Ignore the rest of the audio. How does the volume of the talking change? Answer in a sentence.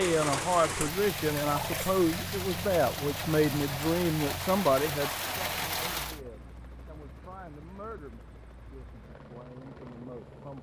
The volume of the talking goes down.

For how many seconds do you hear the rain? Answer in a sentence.
You can hear the rain for 6 seconds altogether.